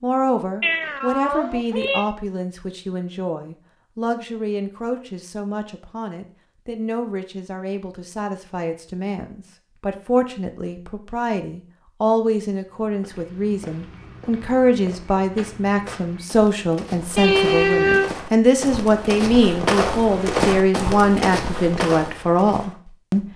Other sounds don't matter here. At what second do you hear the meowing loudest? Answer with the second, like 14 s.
18 s.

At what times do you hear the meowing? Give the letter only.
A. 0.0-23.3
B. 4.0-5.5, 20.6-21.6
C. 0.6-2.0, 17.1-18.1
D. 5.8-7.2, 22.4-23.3
C.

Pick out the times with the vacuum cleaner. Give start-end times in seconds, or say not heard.
not heard.